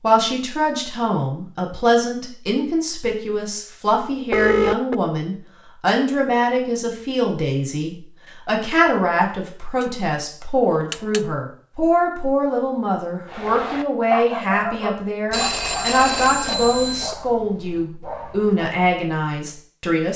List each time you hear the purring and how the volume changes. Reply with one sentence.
You can't hear the purring here.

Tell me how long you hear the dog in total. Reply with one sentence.
You can hear the dog for 6 seconds altogether.